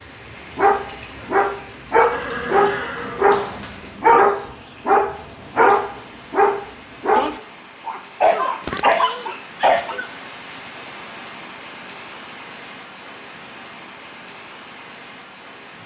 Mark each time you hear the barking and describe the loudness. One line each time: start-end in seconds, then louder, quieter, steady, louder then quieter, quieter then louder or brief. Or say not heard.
0.6-10.1 steady.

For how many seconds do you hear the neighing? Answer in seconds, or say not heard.
2 s.